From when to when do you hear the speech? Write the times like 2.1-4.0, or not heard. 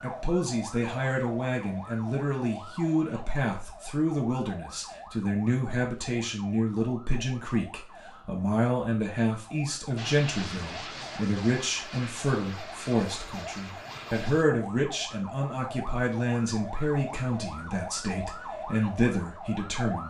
0.0-20.0.